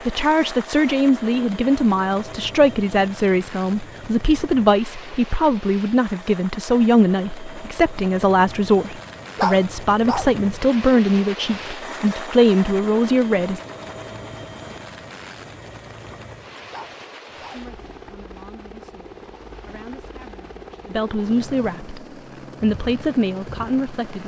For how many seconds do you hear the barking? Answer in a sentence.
You can hear the barking for 2 seconds altogether.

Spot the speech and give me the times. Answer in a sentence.
You can hear the speech from 0.1 to 13.6 s and from 17.4 to 24.2 s.